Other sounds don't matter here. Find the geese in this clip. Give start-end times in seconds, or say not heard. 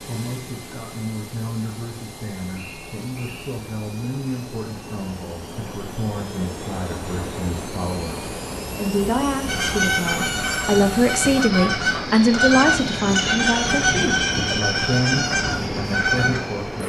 9.4-16.4.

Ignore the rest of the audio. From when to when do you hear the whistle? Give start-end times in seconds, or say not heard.
2.5-3.6.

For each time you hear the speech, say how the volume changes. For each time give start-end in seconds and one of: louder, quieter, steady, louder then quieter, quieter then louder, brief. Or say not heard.
0.0-16.8 louder then quieter.